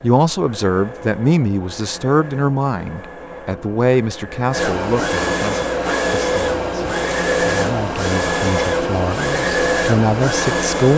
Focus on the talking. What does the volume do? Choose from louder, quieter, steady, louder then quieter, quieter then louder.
quieter then louder.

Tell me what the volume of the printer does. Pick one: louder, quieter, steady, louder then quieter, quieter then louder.
louder.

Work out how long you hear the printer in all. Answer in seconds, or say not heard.
11 s.